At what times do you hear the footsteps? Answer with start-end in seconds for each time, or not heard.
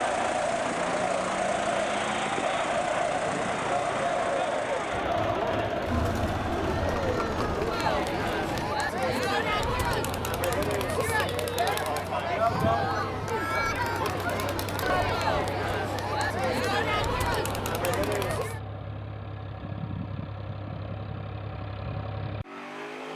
not heard.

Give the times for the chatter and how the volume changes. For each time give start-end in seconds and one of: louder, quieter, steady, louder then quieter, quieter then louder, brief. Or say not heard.
0.0-18.6 steady.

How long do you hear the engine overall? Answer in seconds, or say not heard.
23 s.